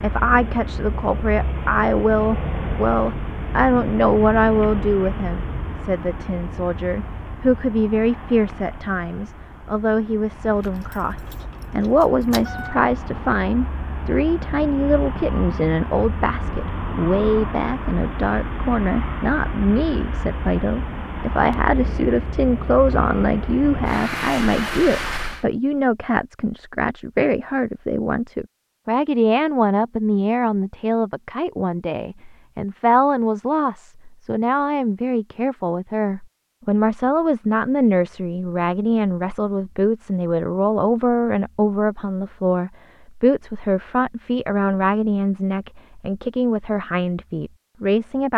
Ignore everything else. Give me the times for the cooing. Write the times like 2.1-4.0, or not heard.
not heard.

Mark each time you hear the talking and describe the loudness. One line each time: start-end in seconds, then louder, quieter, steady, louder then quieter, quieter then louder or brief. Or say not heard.
0.0-48.3 steady.